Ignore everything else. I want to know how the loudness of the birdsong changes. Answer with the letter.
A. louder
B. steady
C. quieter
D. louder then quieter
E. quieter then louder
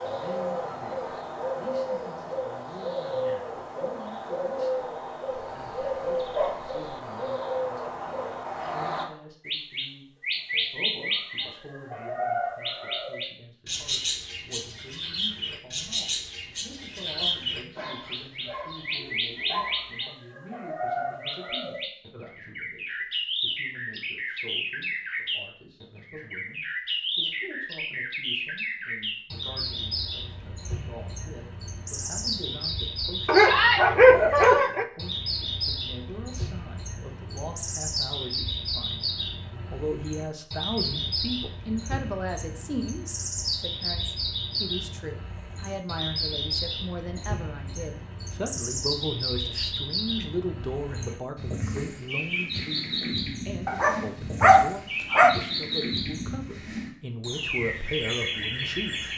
B.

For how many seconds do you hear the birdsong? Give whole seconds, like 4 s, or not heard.
59 s.